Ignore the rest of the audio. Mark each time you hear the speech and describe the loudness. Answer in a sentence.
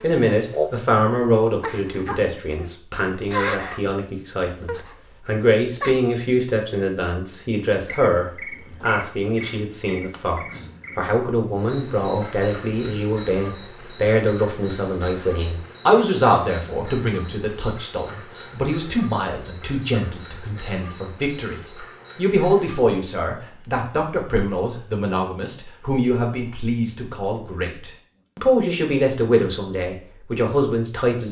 The speech can be heard from 0.0 to 31.2 s, at a steady volume.